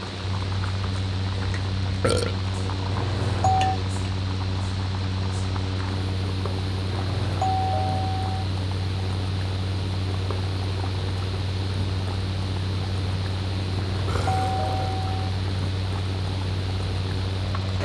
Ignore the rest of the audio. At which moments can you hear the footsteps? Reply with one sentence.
The footsteps can't be heard in this clip.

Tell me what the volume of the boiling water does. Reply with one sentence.
The loudness of the boiling water stays about the same.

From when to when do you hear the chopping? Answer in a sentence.
The chopping can't be heard in this clip.